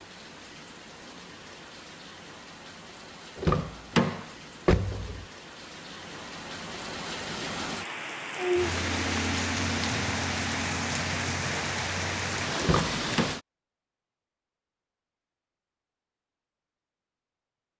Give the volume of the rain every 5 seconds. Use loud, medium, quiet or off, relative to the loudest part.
quiet, loud, loud, off.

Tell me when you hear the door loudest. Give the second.
4 s.